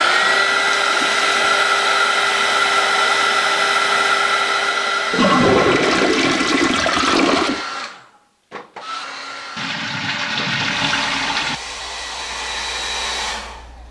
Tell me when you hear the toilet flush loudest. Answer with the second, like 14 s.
6 s.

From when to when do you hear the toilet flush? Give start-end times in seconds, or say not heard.
0.2-1.4, 5.1-7.7, 9.6-11.6.